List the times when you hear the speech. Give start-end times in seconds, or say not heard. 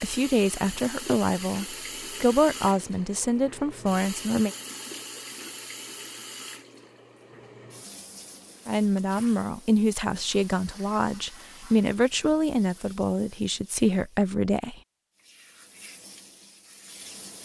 0.0-4.5, 8.7-14.8.